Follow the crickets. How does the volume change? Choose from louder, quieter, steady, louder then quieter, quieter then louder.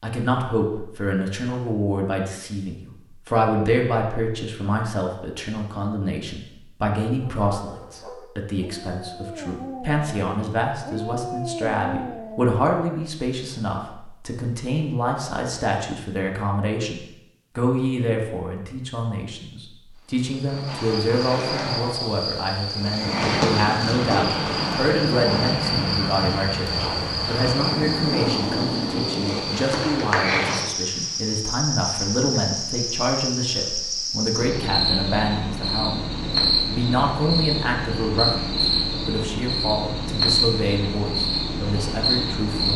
steady.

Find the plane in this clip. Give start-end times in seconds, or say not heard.
23.0-29.4.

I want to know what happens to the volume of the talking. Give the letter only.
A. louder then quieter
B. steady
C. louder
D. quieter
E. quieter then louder
B.